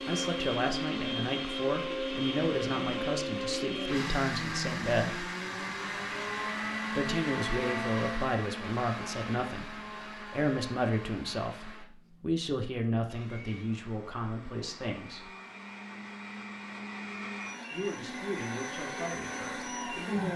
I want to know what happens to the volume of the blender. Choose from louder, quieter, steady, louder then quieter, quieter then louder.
quieter then louder.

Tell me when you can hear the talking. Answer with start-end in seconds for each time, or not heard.
0.1-5.2, 7.0-15.3, 17.7-20.3.